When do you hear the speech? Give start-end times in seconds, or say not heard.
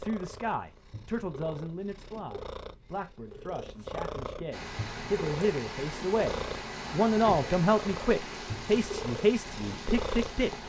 0.0-10.6.